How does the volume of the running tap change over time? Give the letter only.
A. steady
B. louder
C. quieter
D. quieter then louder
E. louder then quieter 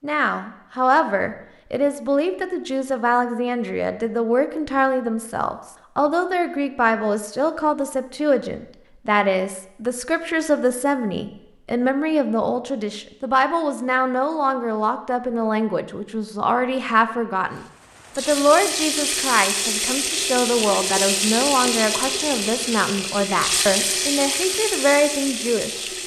A.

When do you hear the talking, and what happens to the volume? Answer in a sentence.
You can hear the talking from 0.0 to 25.9 s, at a steady volume.